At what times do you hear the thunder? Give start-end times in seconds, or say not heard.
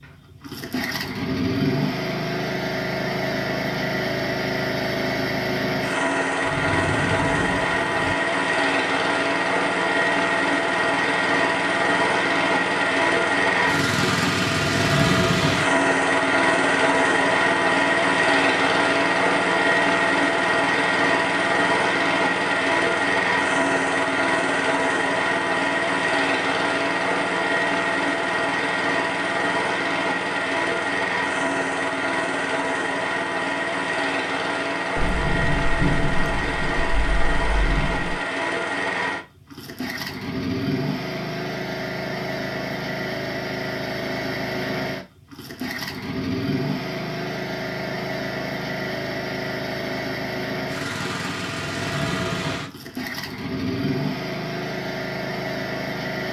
6.5-8.2, 35.0-38.1.